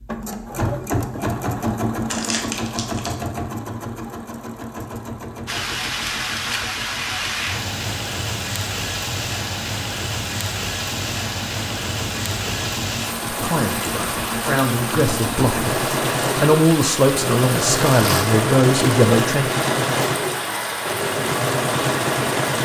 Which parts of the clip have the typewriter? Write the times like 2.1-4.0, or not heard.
not heard.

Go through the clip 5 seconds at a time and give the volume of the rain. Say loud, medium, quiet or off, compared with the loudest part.
off, loud, loud, loud, loud.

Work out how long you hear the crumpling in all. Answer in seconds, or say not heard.
2 s.